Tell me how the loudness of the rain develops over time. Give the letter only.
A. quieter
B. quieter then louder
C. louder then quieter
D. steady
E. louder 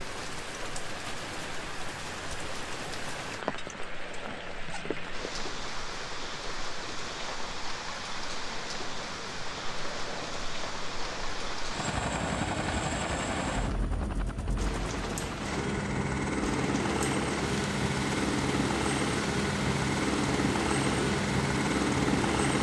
D.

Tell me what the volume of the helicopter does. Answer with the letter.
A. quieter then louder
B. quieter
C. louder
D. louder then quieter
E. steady
C.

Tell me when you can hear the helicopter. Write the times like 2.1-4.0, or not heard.
0.1-22.5.